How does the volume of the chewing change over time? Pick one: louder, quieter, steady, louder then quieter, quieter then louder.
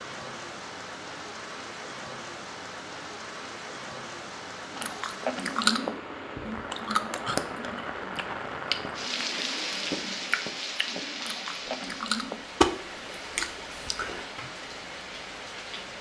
quieter then louder.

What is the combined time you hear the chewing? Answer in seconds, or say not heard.
10 s.